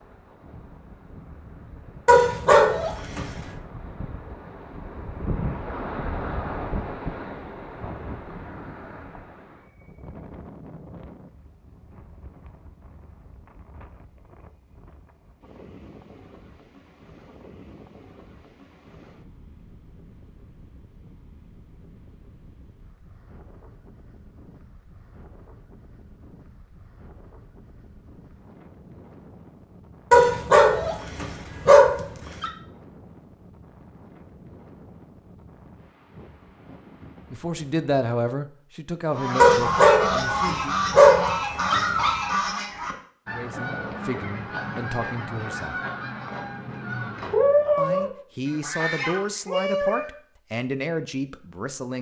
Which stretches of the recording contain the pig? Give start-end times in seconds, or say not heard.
not heard.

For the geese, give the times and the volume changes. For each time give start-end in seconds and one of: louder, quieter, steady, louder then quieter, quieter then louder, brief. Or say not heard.
39.1-50.1 quieter then louder.